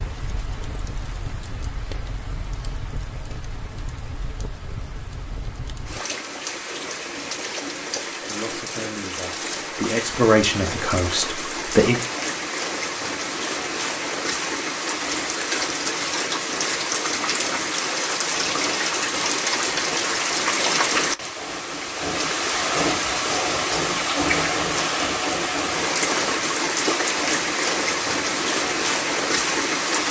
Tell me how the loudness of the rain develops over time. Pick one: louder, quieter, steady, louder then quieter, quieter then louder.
louder.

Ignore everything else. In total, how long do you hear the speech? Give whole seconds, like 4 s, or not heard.
4 s.